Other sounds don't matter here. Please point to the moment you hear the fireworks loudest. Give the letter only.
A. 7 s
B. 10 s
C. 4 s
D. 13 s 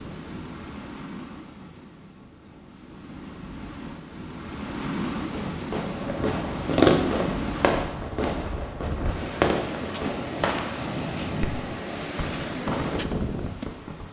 A.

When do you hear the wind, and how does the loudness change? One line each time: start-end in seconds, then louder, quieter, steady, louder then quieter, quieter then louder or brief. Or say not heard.
0.0-14.0 louder.